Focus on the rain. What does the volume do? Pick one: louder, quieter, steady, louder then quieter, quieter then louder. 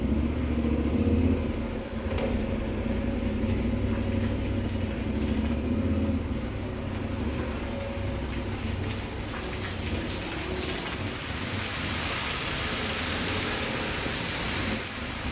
louder.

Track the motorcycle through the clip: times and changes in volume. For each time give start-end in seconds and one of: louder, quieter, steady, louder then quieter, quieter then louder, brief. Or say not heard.
0.0-15.2 quieter.